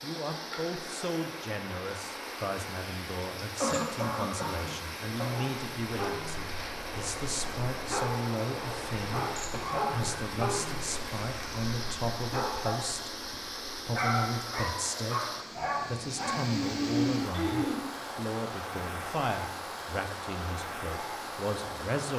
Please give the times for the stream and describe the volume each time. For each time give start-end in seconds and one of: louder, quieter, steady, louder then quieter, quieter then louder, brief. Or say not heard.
0.0-22.1 steady.